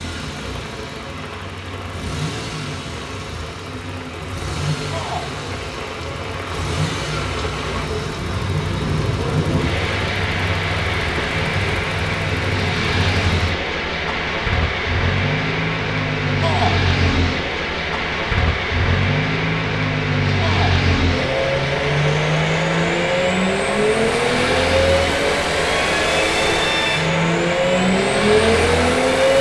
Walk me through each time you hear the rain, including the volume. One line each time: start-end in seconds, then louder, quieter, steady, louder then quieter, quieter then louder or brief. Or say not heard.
0.0-29.3 louder.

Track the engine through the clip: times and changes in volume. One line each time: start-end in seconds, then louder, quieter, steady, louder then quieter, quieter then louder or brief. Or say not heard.
0.0-29.3 louder.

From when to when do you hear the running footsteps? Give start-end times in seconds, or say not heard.
not heard.